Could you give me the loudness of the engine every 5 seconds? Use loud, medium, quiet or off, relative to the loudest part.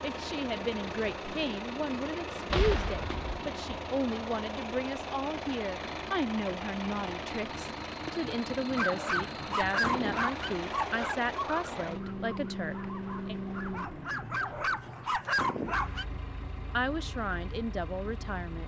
loud, loud, loud, medium.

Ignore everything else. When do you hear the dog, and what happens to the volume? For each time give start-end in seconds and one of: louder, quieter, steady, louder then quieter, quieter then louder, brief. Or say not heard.
8.8-16.1 quieter then louder.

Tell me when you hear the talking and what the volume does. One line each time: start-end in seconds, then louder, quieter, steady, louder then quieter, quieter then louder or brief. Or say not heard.
0.0-13.3 steady
16.7-18.6 brief.